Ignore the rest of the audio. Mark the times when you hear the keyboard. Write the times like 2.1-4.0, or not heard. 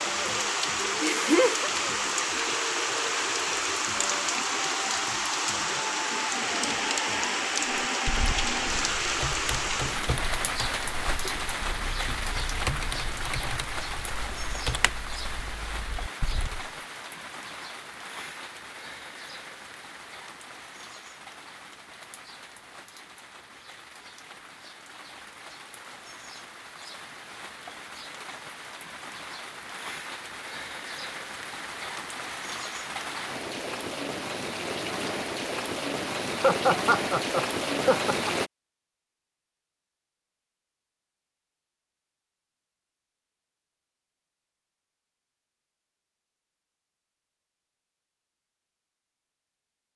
7.7-16.7.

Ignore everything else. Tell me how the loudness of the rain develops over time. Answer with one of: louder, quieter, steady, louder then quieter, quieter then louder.
quieter then louder.